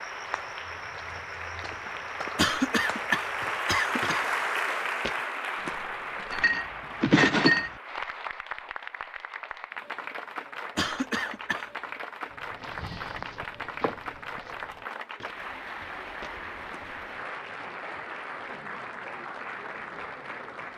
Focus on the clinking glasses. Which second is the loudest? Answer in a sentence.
The loudest moment of the clinking glasses is at 7 seconds.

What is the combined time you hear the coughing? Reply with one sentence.
The coughing can be heard for 3 seconds in total.